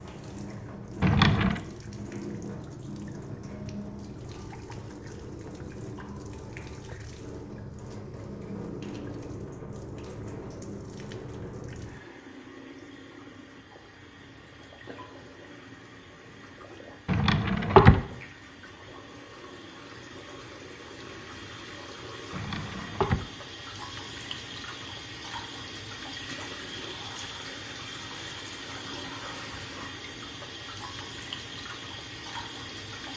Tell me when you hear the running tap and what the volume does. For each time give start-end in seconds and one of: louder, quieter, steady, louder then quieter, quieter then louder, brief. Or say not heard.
0.0-33.1 quieter then louder.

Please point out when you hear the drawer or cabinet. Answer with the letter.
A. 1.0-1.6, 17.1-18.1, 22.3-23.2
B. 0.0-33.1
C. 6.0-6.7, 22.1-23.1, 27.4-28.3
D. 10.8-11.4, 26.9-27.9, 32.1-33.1
A.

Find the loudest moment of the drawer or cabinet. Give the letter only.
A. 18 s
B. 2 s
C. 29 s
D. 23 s
A.